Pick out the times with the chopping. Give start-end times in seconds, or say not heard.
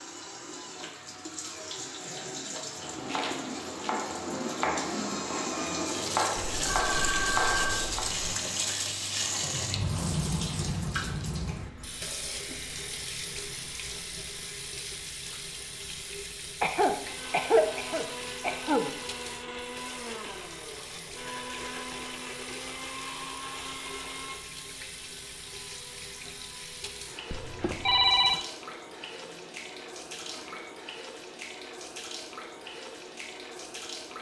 2.6-8.1.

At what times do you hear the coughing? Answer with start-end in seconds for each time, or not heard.
16.6-18.9.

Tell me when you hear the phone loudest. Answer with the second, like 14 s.
28 s.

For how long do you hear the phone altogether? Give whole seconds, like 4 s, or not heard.
3 s.